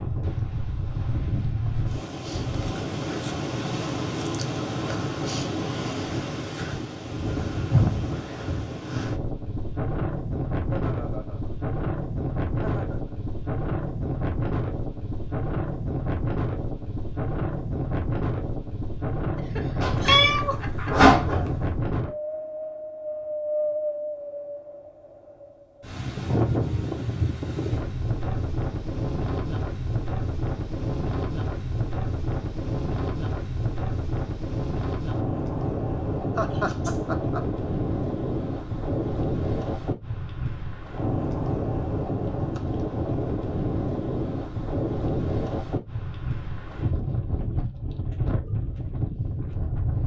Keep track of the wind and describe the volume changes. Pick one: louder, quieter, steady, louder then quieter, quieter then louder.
steady.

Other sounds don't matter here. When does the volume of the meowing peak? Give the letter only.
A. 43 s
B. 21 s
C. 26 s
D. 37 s
B.